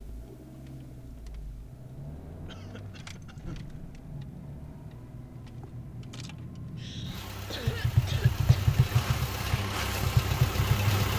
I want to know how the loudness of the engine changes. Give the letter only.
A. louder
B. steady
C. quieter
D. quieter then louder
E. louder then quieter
A.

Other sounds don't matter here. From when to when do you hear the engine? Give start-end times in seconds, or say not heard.
0.0-11.1.